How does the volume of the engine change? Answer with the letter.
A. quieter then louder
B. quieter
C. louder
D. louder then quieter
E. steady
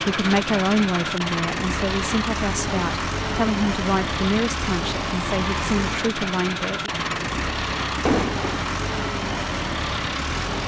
E.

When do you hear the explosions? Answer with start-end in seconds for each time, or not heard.
8.1-8.6.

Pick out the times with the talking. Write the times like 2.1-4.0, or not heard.
0.0-6.9.